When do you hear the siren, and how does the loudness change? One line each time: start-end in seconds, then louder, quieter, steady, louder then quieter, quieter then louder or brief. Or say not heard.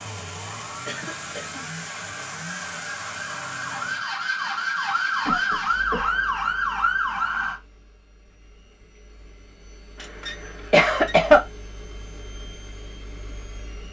0.0-7.6 louder.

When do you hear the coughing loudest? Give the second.
11 s.